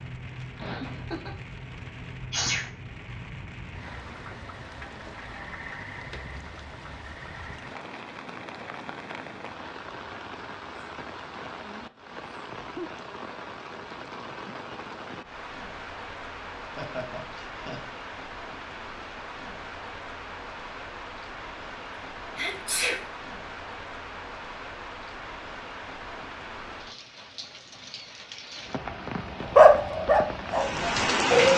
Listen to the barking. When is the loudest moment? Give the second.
30 s.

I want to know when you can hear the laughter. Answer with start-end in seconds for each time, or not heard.
0.6-1.4, 16.8-17.8.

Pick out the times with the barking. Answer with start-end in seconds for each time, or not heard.
29.6-31.5.